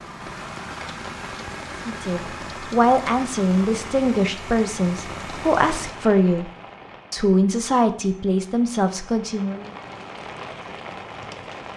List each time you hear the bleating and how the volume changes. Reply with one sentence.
The bleating can't be heard in this clip.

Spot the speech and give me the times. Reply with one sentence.
You can hear the speech from 1.9 to 6.5 s and from 7.1 to 9.7 s.